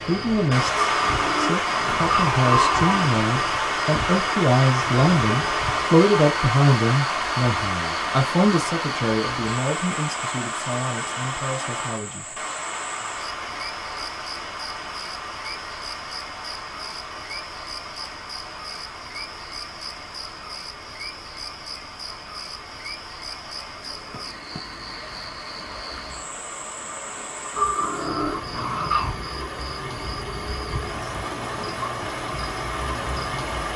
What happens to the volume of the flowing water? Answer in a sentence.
The loudness of the flowing water goes down, then up.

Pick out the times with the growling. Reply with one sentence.
The growling can be heard from 0.8 to 3.0 s and from 27.6 to 29.1 s.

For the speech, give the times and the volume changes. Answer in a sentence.
You can hear the speech from 0.1 to 12.2 s, getting louder then quieter.